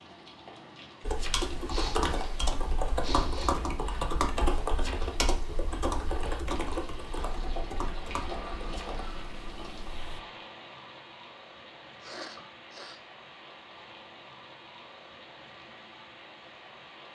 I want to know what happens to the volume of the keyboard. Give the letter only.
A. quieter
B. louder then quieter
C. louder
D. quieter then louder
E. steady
A.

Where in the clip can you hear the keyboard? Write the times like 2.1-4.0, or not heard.
1.0-10.2.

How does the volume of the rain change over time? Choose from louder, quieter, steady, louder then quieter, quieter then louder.
louder then quieter.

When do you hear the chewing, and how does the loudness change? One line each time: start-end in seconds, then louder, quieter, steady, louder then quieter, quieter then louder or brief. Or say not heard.
not heard.